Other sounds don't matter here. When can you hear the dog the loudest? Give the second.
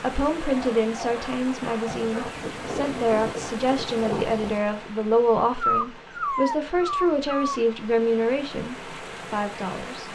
6 s.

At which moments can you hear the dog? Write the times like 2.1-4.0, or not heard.
0.3-2.4, 5.6-7.6.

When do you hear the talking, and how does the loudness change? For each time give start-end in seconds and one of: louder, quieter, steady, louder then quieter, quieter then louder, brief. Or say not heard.
0.0-10.0 steady.